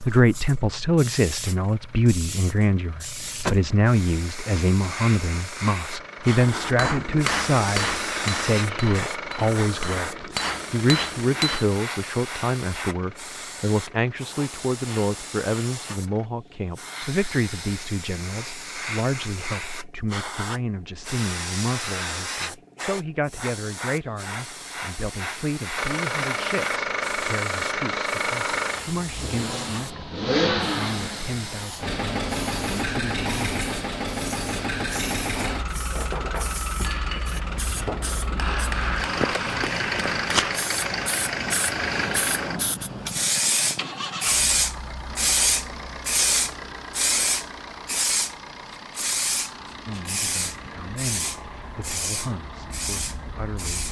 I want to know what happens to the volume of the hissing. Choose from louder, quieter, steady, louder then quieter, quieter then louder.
louder.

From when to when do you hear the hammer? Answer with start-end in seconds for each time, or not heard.
6.4-11.7, 35.3-40.6.